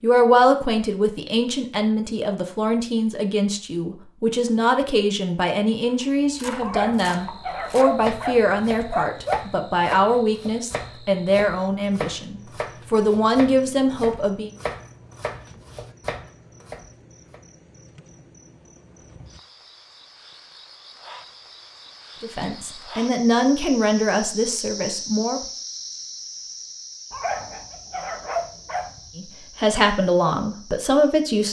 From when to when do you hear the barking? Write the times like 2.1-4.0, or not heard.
6.6-9.4, 27.1-29.1.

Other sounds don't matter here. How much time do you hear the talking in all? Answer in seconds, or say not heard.
20 s.